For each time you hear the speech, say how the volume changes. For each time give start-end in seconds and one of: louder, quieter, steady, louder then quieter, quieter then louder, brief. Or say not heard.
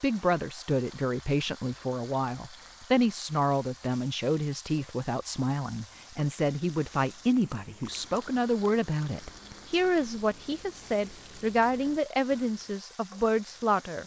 0.0-14.0 steady.